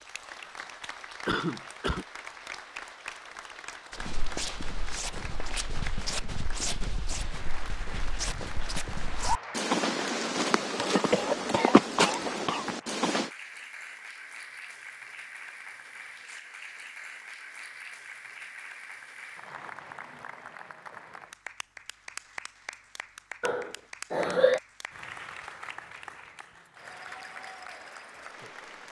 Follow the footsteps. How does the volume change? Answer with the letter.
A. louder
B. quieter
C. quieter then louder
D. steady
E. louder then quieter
A.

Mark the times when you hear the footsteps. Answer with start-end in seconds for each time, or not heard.
3.9-13.3.